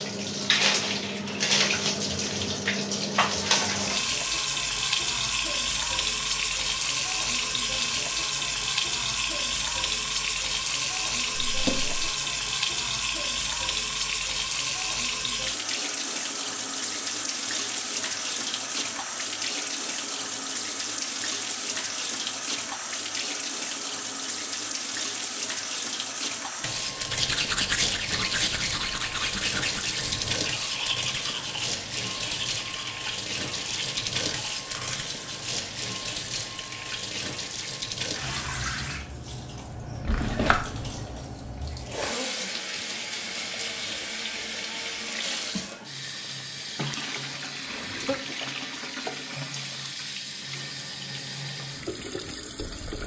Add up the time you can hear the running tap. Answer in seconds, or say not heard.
53 s.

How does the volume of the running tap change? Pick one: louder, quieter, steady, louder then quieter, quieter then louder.
quieter.